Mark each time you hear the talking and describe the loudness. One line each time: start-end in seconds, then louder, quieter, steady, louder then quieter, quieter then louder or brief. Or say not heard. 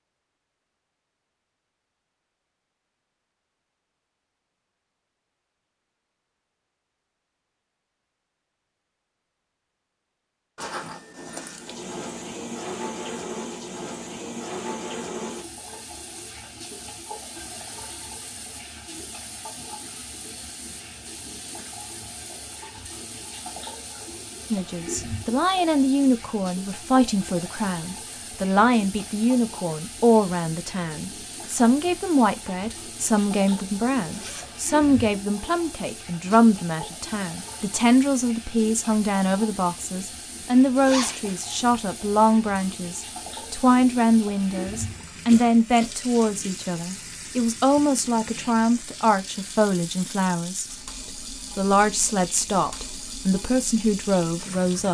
24.5-54.8 steady.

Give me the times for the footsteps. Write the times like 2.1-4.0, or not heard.
not heard.